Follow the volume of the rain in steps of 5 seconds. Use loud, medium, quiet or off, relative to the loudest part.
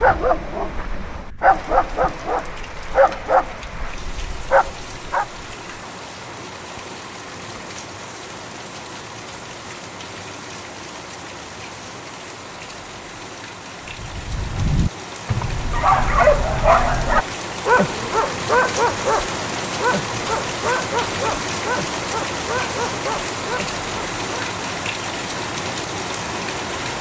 medium, medium, medium, loud, loud, loud.